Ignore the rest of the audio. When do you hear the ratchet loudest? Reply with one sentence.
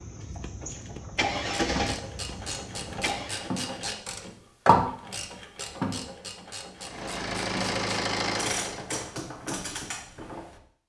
The volume of the ratchet peaks at 5 seconds.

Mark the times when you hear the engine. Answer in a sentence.
You can hear the engine from 0.0 to 3.5 s and from 6.8 to 8.8 s.